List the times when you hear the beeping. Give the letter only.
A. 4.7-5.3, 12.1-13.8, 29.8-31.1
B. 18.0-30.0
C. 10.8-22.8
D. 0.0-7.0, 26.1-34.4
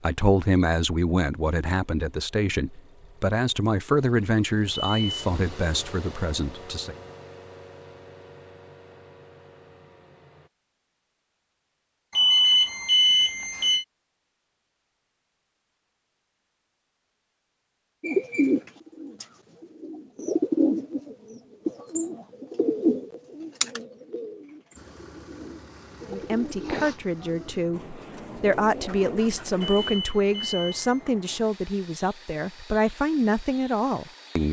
A.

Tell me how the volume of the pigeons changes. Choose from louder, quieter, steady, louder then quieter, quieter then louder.
quieter.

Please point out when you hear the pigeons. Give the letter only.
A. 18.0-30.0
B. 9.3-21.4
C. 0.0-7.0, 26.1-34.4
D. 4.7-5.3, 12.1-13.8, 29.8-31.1
A.